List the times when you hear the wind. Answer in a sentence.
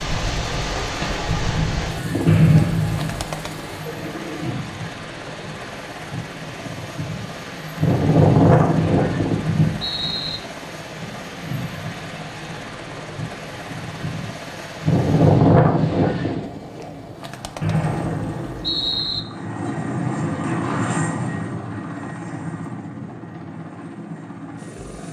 You can hear the wind from 0.0 to 16.4 s.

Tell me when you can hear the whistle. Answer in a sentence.
You can hear the whistle from 2.2 to 3.3 s, from 8.8 to 10.4 s and from 17.6 to 19.2 s.